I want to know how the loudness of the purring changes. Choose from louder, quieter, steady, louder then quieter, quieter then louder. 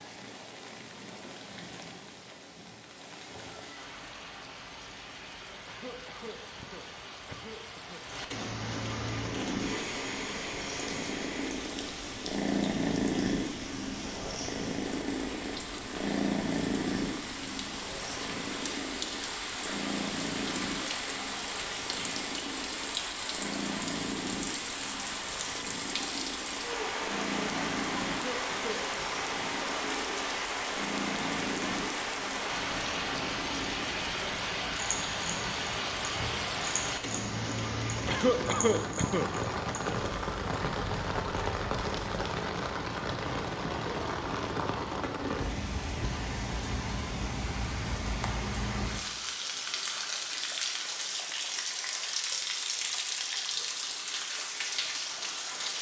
quieter.